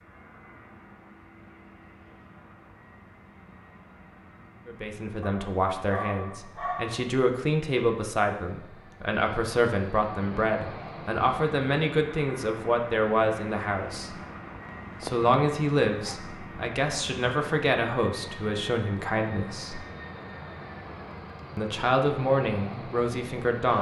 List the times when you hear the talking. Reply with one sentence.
The talking can be heard from 4.7 to 14.2 s, from 15.0 to 19.8 s and from 21.6 to 23.7 s.